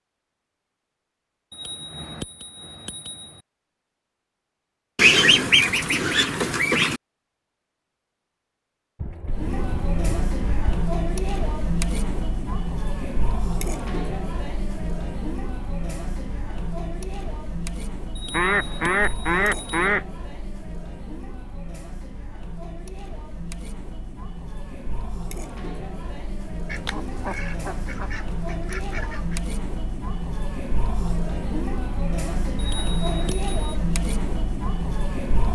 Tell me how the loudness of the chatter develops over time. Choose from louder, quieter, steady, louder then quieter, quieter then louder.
quieter then louder.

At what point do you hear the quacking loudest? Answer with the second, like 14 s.
5 s.